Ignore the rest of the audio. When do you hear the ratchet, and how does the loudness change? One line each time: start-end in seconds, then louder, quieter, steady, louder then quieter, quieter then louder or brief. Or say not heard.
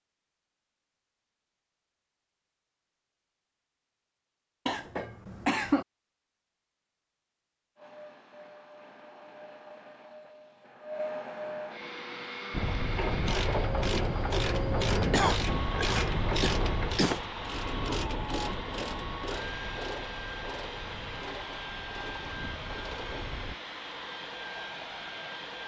12.5-23.6 quieter.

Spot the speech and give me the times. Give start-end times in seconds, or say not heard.
not heard.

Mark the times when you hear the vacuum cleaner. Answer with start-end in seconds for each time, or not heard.
7.8-25.6.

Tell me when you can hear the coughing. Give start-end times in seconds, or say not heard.
4.7-5.8, 15.1-17.2.